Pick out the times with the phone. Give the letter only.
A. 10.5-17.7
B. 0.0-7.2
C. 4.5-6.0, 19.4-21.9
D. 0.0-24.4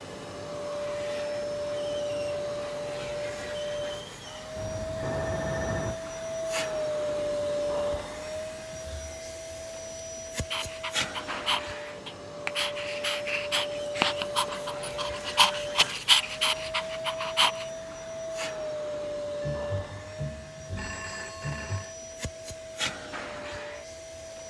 C.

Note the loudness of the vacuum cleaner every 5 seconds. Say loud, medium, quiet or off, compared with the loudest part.
loud, loud, loud, loud, medium.